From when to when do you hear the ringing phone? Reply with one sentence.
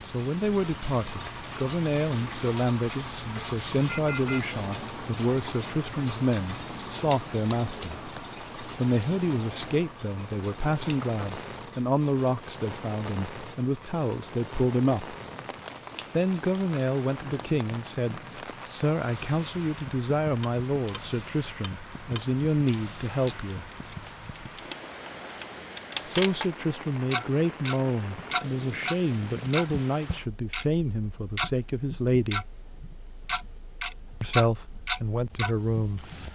The ringing phone can be heard from 3.9 to 4.5 s.